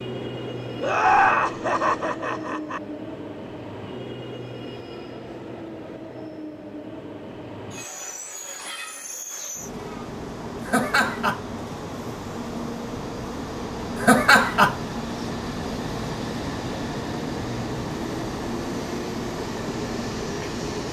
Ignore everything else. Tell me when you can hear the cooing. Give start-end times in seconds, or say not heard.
not heard.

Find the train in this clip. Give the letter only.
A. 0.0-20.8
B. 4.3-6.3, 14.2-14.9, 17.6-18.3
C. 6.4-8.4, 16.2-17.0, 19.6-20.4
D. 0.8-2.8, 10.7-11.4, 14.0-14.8
A.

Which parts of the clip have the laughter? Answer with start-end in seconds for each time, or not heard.
0.8-2.8, 10.7-11.4, 14.0-14.8.